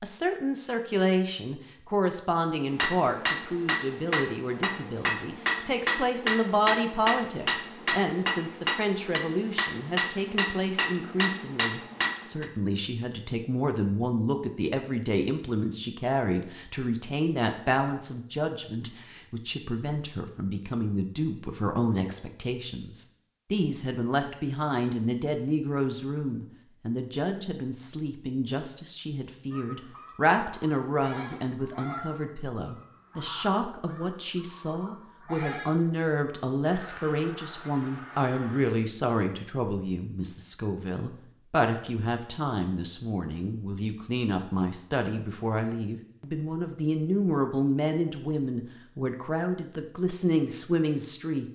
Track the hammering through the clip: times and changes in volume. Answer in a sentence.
The hammering can be heard from 2.7 to 12.4 s, at a steady volume.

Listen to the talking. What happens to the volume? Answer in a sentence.
The volume of the talking stays about the same.